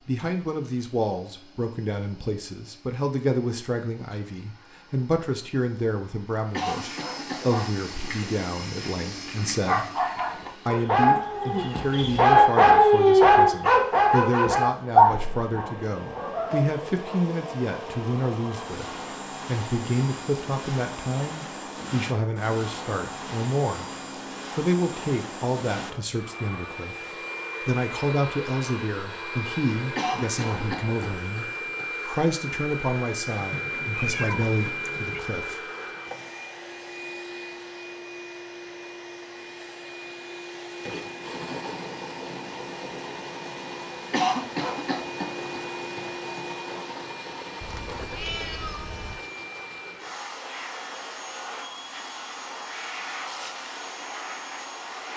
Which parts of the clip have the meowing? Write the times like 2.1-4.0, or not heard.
11.2-12.7, 33.4-35.2, 47.6-49.2.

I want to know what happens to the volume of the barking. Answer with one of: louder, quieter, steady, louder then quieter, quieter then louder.
louder then quieter.